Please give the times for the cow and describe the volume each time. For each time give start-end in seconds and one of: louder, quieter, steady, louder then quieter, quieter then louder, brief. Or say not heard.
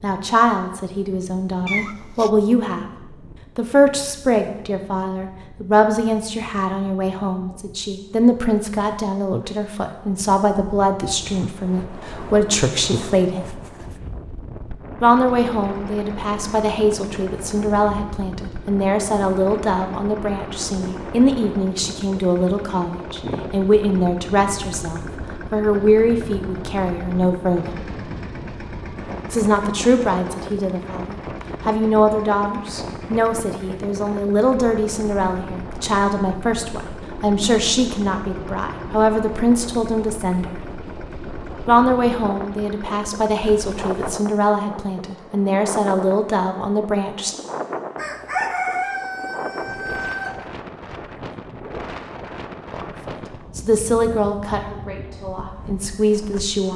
not heard.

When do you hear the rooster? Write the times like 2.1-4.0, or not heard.
48.0-50.5.